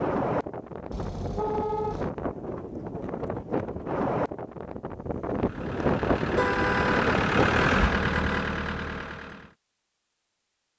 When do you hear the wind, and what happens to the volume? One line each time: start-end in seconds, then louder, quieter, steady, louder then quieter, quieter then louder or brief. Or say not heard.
0.0-8.0 louder.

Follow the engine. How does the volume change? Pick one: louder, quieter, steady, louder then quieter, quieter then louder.
louder then quieter.